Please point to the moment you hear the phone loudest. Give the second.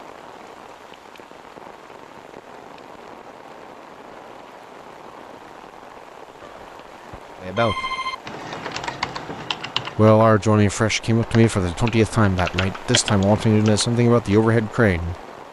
8 s.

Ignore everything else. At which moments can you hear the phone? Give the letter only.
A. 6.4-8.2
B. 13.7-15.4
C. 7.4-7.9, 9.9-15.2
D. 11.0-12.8
A.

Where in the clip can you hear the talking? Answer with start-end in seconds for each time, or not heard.
7.4-7.9, 9.9-15.2.